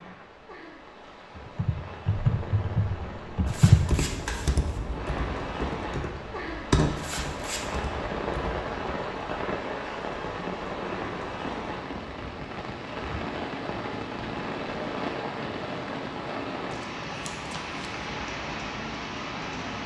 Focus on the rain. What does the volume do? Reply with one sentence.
The loudness of the rain goes up.